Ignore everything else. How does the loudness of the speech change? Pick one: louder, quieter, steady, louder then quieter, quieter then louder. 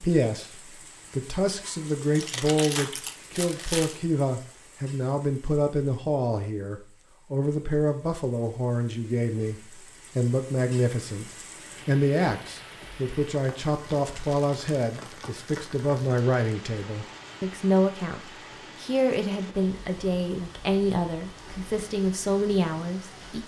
steady.